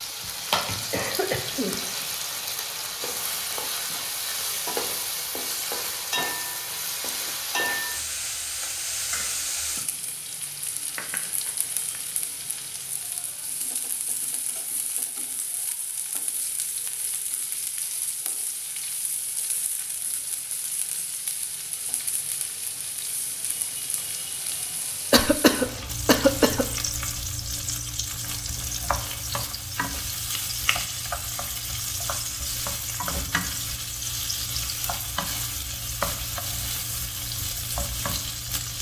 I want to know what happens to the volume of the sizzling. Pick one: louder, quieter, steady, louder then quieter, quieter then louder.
quieter then louder.